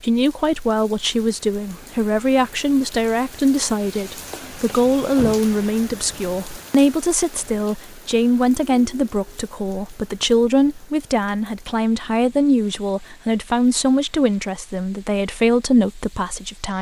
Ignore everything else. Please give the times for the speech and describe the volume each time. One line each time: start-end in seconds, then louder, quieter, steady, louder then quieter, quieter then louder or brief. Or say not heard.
0.0-16.7 steady.